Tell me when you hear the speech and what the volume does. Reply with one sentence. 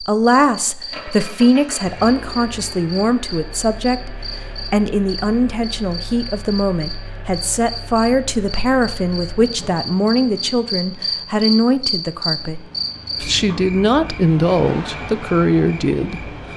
You can hear the speech from 0.0 to 16.5 s, at a steady volume.